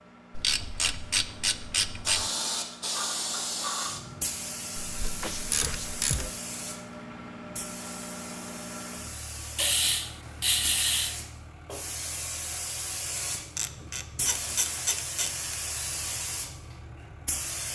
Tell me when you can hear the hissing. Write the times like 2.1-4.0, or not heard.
2.0-17.6.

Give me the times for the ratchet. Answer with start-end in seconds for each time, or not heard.
0.3-2.3, 4.8-6.3, 9.6-11.2, 13.6-15.3.